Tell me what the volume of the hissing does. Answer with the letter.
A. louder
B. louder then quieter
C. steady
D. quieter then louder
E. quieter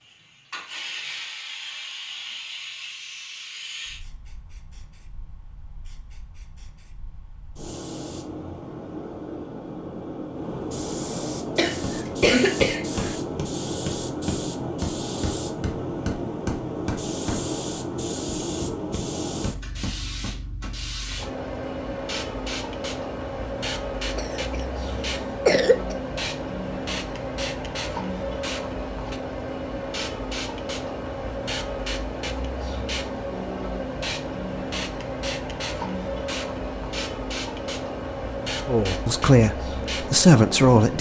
A.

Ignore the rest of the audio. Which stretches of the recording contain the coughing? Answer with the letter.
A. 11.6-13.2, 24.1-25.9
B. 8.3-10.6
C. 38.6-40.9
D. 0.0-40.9
A.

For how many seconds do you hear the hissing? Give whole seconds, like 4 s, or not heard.
41 s.